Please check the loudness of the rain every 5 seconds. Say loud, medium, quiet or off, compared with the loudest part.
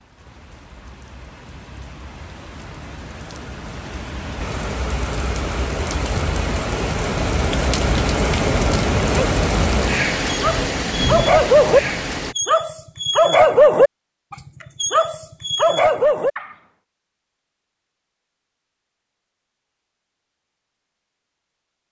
quiet, loud, loud, off, off.